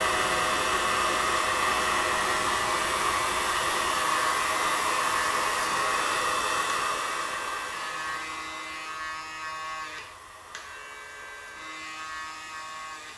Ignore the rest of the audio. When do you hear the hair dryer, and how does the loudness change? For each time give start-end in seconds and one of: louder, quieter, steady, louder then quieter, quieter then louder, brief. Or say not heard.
0.0-13.1 quieter.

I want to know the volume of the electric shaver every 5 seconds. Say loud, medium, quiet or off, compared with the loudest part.
loud, loud, medium.